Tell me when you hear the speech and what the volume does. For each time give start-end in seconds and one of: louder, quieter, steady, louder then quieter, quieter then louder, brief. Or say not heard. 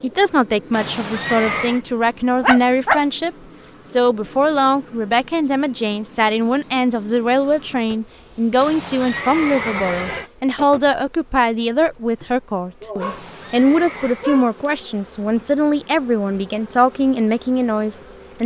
0.0-18.4 steady.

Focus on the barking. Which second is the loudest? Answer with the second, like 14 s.
3 s.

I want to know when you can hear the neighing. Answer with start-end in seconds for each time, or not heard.
0.7-1.8, 8.6-10.3, 13.0-14.3.